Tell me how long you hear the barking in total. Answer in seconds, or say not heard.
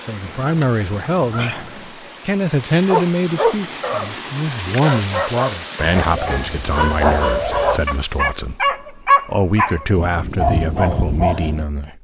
8 s.